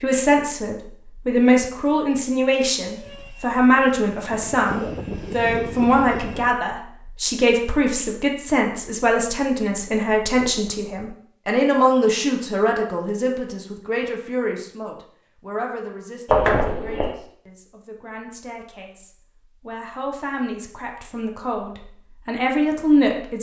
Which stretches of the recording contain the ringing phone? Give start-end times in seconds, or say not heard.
16.2-17.1.